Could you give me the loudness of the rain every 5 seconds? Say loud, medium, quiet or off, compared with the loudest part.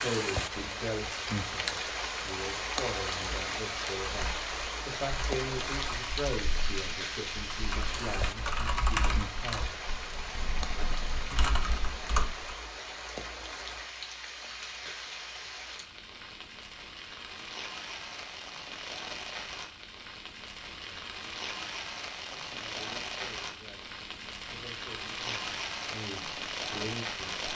loud, loud, medium, medium, medium, loud.